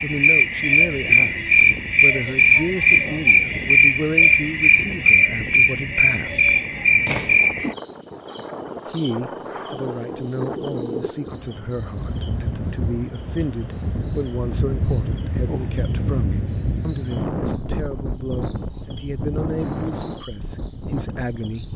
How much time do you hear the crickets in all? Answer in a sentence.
You can hear the crickets for 22 seconds altogether.